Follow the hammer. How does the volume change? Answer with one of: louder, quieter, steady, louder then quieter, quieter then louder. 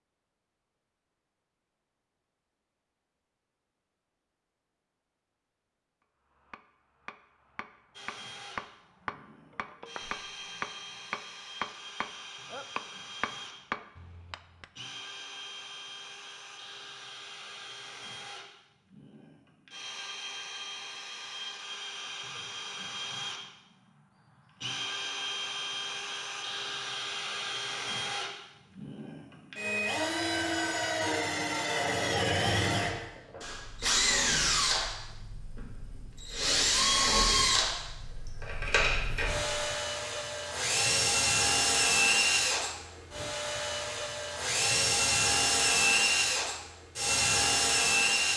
louder.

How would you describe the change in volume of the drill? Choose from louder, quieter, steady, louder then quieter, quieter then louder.
louder.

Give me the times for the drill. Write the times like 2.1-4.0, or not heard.
7.9-48.3.